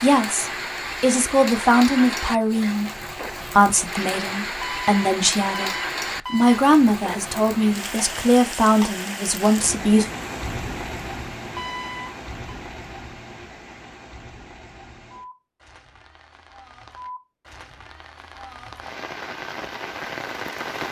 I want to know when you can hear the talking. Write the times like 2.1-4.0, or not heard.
0.0-10.1.